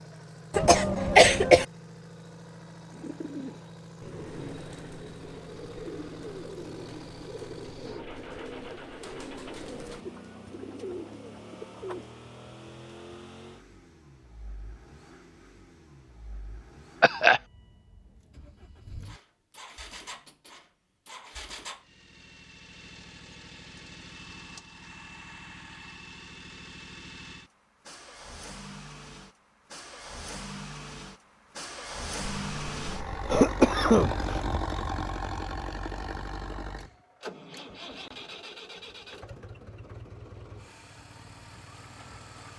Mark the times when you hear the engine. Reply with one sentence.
The engine can be heard from 0.0 to 42.5 s.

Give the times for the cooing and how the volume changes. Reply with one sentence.
You can hear the cooing from 2.9 to 12.1 s, at a steady volume.